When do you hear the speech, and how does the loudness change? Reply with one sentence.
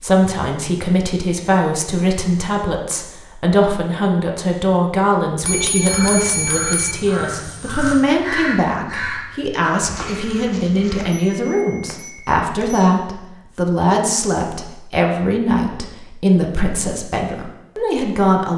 The speech can be heard from 0.0 to 18.5 s, at a steady volume.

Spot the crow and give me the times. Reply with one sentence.
You can hear the crow from 5.8 to 11.1 s.